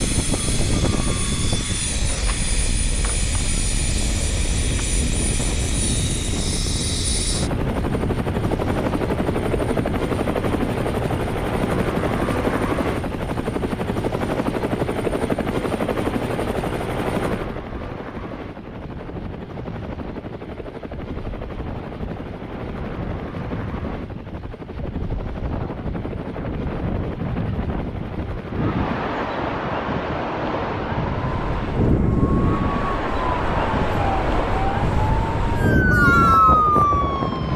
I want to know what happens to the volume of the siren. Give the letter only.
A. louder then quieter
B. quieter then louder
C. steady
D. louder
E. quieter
D.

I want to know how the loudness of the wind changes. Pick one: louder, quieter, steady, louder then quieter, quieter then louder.
quieter then louder.